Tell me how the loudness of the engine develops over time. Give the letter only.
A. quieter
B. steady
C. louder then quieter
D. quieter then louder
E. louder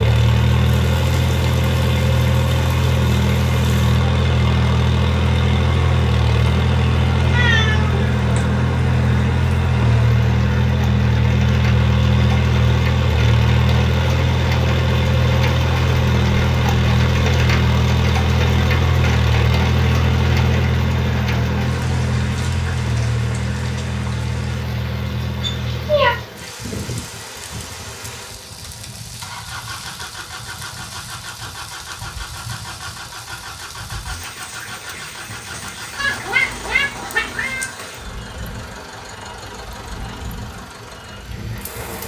A.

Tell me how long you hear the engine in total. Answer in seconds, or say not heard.
42 s.